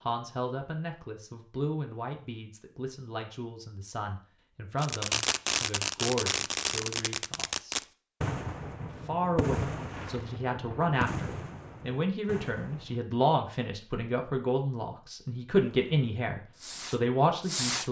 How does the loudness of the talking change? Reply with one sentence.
The volume of the talking goes up.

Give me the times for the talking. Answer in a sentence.
The talking can be heard from 0.0 to 7.8 s and from 9.1 to 17.8 s.